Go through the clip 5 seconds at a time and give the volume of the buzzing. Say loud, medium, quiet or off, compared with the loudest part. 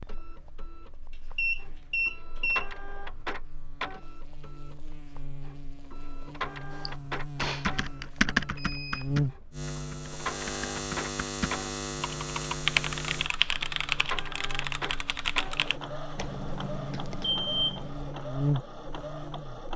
quiet, loud, loud, loud.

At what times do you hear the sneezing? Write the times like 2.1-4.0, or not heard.
not heard.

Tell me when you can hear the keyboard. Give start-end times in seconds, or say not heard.
6.8-15.8.